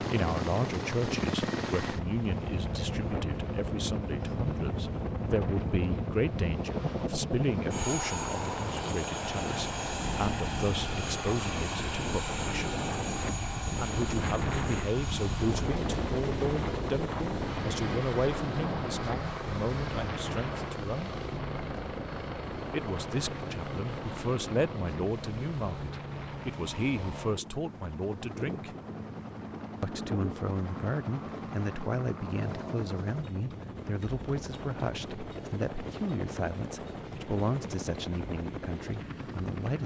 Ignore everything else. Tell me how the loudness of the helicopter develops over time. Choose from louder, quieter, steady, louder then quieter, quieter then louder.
quieter.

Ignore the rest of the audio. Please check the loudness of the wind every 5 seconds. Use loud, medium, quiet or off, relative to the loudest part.
medium, medium, loud, loud, medium, medium, medium, medium.